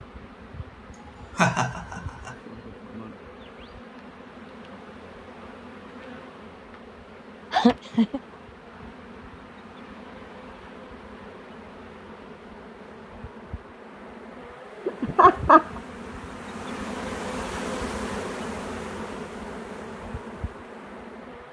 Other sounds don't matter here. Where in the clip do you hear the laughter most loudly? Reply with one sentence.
The volume of the laughter peaks at 15 seconds.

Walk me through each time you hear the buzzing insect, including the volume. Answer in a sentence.
You can hear the buzzing insect from 0.0 to 21.4 s, getting louder.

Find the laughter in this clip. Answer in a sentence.
You can hear the laughter from 1.4 to 2.3 s, from 7.5 to 8.2 s and from 14.8 to 15.7 s.